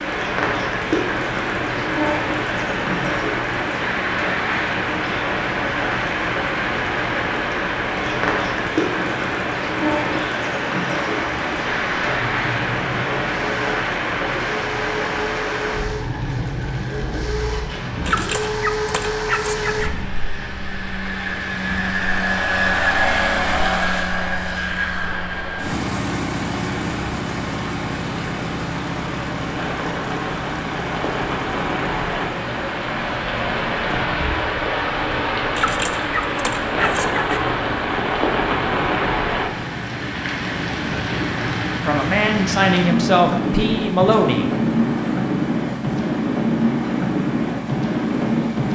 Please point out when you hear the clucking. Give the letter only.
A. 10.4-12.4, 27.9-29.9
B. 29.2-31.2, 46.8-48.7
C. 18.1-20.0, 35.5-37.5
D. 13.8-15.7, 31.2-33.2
C.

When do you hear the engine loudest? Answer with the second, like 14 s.
23 s.